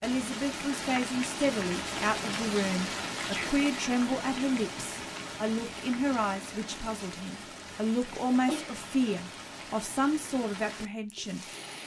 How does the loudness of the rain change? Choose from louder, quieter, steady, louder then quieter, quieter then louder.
quieter.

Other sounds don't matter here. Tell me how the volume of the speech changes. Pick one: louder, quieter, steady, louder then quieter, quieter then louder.
steady.